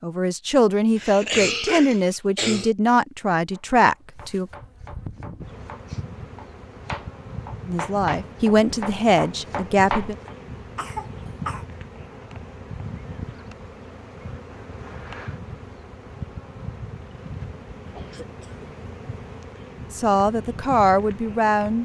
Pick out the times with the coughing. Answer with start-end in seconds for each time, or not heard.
0.9-2.7, 10.8-11.7, 17.9-18.6.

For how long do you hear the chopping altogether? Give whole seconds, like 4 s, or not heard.
7 s.